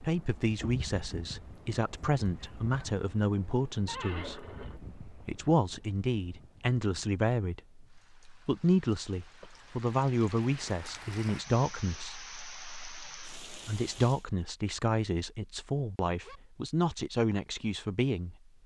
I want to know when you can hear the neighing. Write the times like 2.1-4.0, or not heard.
3.9-5.4.